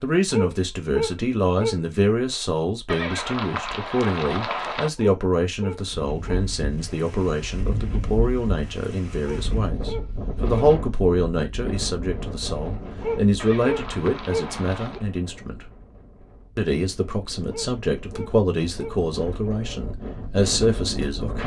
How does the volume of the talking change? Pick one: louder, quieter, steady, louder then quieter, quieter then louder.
steady.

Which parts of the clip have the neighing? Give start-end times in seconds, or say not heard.
2.9-4.9, 13.3-15.1.